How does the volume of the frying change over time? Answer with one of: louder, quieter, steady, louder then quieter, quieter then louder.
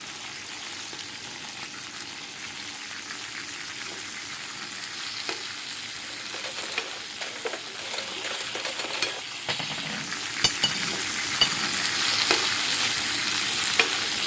louder.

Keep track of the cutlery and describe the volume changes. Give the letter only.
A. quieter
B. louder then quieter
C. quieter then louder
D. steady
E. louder
E.